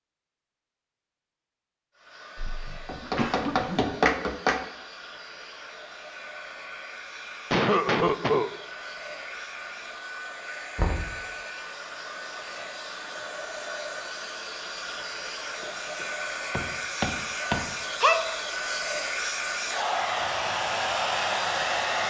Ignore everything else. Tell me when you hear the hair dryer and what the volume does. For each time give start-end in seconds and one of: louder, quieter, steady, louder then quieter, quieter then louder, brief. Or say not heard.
1.9-22.0 louder.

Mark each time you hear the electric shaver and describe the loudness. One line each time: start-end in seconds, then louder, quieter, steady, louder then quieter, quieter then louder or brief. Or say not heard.
not heard.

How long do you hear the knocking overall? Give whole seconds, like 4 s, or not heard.
4 s.